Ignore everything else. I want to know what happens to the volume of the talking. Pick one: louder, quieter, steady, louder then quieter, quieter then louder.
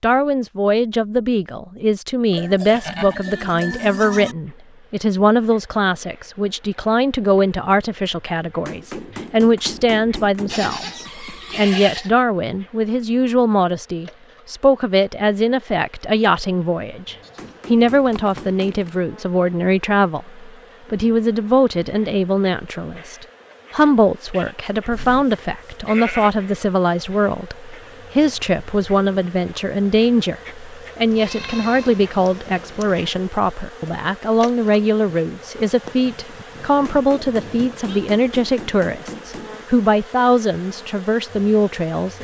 steady.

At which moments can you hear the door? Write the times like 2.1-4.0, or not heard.
not heard.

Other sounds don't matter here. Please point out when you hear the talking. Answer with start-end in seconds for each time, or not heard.
0.0-42.1.